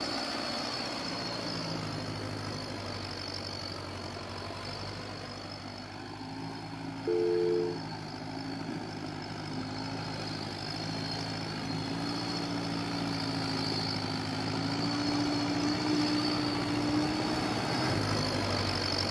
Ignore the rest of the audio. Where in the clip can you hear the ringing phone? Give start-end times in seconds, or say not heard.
7.0-7.8.